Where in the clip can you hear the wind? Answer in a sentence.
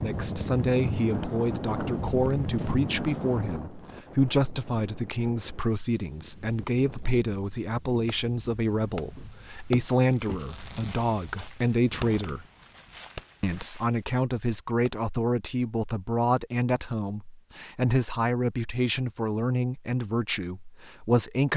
You can hear the wind from 0.0 to 13.6 s.